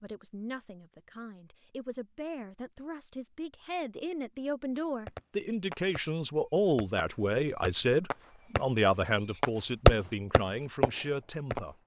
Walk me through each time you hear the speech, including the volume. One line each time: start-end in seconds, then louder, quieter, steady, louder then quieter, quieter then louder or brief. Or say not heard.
0.0-11.8 louder then quieter.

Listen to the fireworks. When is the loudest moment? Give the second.
10 s.